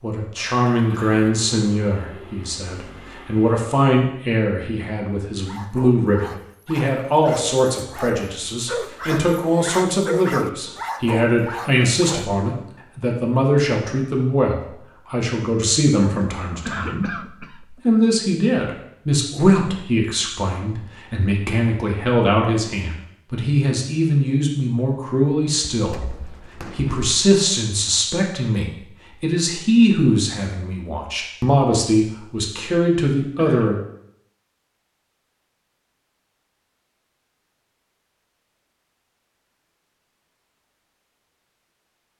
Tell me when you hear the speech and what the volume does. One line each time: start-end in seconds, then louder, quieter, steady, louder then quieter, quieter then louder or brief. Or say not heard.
0.0-33.8 steady.